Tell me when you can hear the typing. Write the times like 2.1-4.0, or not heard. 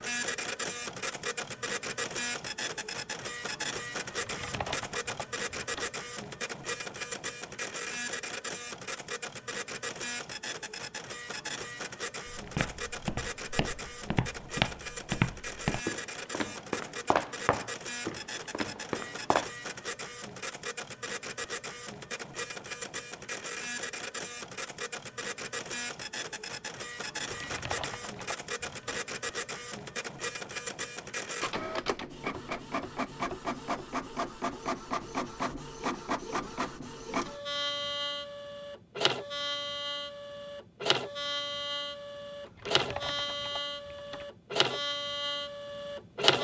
4.1-5.9, 27.2-29.0, 42.5-44.2.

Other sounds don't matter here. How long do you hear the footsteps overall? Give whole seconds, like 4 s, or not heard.
7 s.